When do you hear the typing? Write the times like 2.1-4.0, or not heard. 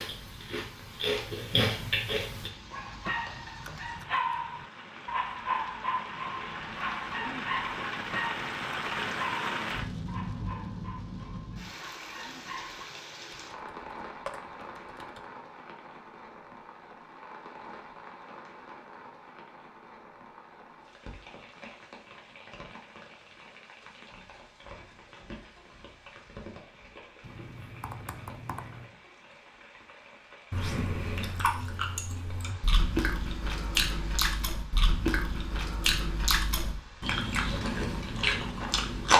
13.3-15.2, 27.2-28.9.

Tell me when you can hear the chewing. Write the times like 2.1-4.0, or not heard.
0.0-2.5, 30.5-39.1.